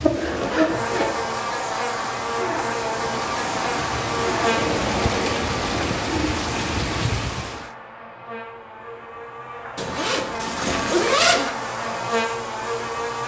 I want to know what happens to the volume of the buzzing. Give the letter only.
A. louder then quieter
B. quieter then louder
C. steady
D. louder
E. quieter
B.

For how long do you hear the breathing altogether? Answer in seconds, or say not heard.
not heard.